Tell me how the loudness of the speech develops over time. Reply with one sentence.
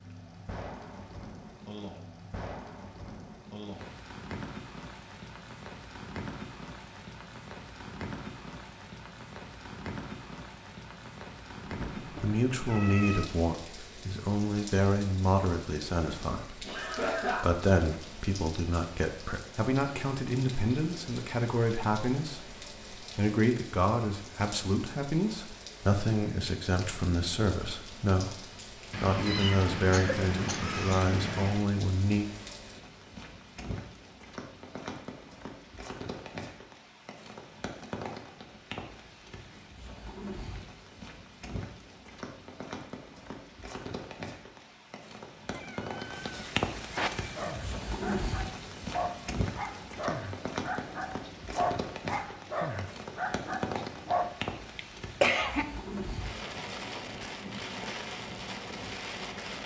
The volume of the speech stays about the same.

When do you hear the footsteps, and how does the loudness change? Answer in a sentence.
The footsteps can't be heard in this clip.